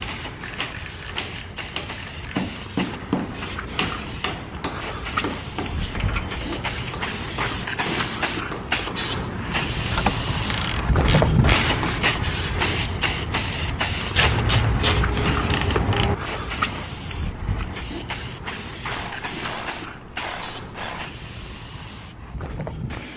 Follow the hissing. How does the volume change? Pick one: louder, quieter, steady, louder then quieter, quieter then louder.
louder then quieter.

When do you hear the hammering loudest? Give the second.
3 s.